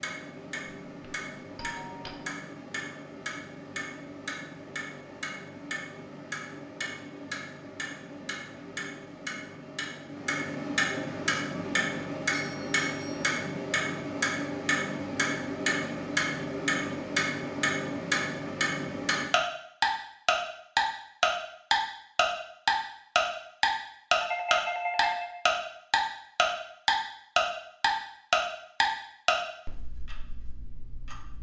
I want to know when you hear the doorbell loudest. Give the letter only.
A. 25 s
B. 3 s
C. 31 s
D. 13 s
A.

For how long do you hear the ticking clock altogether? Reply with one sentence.
You can hear the ticking clock for 31 seconds altogether.